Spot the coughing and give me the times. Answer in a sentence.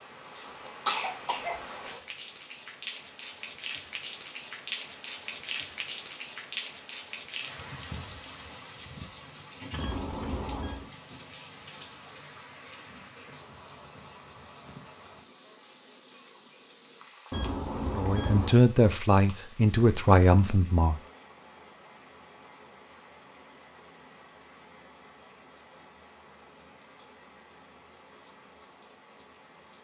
The coughing can be heard from 0.8 to 2.0 s.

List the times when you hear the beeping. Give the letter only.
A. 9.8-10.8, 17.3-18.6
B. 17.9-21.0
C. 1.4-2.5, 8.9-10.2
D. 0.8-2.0
A.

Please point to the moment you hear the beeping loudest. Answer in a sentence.
The volume of the beeping peaks at 18 seconds.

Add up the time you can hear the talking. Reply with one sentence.
The talking can be heard for 3 seconds in total.